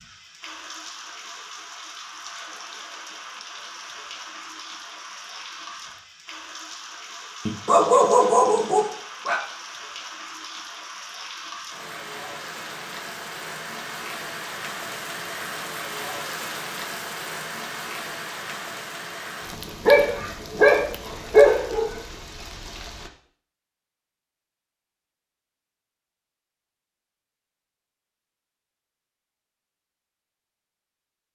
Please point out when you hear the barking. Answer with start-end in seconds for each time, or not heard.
7.5-9.4, 19.9-21.9.